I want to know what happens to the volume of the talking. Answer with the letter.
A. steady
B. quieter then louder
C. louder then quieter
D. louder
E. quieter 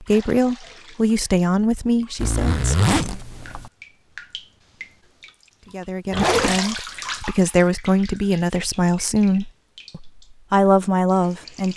B.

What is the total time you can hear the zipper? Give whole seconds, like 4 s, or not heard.
2 s.